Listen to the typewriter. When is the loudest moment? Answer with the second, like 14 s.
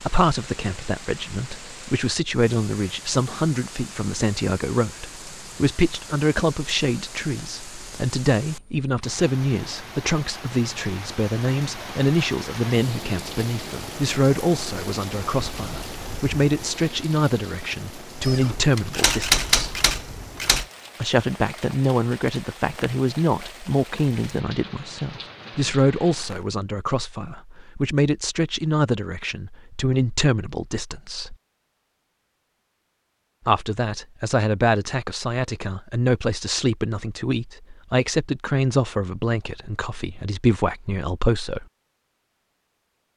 19 s.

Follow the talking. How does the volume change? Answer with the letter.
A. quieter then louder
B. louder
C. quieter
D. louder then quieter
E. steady
E.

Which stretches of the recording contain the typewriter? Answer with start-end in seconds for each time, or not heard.
18.2-20.6.